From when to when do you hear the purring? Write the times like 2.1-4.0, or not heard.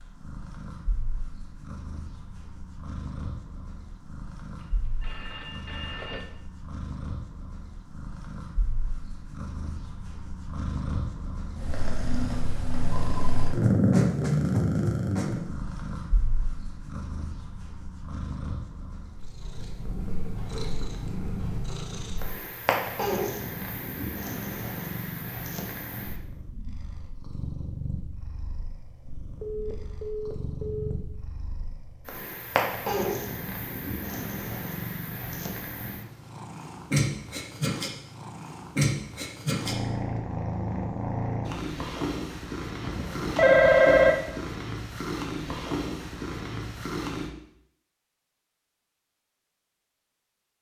0.0-47.3.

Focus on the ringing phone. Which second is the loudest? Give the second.
44 s.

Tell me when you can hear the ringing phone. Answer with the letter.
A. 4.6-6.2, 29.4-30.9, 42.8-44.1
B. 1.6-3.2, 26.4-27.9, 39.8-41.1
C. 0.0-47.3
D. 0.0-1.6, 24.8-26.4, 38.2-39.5
A.